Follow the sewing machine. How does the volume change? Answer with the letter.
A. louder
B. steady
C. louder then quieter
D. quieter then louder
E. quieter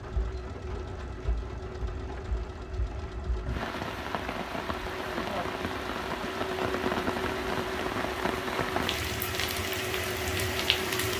A.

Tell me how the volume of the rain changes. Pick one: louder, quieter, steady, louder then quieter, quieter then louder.
louder.